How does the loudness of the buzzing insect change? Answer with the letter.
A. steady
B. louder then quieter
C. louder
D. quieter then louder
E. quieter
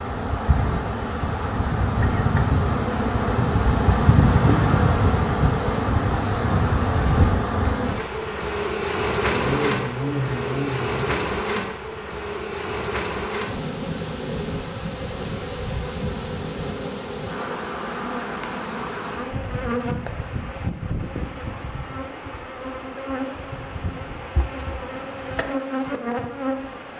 E.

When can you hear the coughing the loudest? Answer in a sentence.
The loudest moment of the coughing is at 10 seconds.